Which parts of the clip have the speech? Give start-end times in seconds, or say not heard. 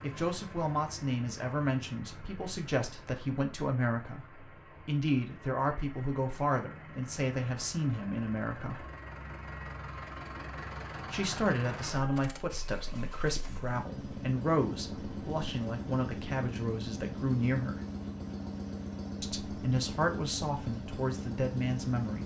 0.0-8.8, 11.1-17.8, 19.2-22.2.